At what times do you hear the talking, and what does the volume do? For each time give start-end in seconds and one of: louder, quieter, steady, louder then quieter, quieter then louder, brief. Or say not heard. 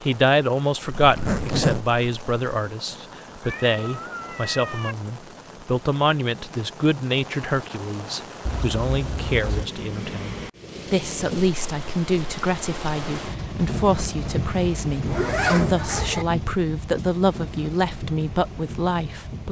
0.0-19.4 steady.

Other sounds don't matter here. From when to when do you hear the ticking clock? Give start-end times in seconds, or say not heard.
not heard.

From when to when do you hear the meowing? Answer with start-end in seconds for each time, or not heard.
3.4-5.0.